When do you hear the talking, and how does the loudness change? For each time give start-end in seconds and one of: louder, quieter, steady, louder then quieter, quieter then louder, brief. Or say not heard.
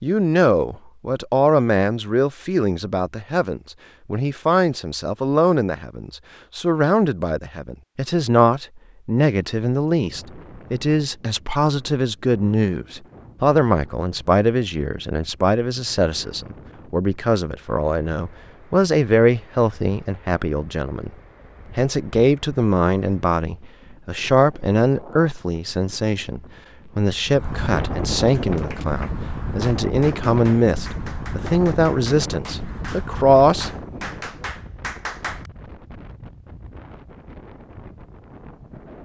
0.0-21.1 steady
21.8-33.7 steady.